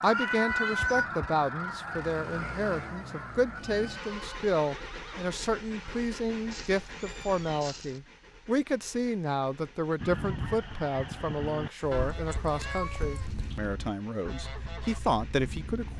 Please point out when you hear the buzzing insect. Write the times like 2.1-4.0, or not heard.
not heard.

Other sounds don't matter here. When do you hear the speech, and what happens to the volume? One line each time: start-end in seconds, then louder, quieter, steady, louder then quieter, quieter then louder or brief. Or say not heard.
0.0-15.9 steady.